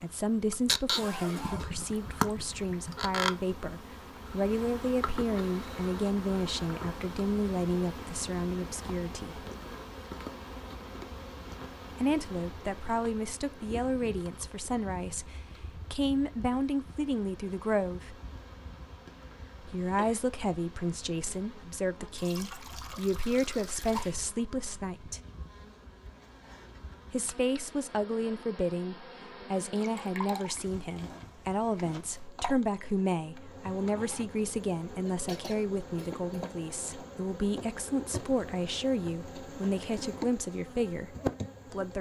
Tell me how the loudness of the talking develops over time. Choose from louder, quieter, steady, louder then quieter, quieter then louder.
steady.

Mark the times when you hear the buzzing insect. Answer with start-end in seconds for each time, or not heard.
0.0-41.9.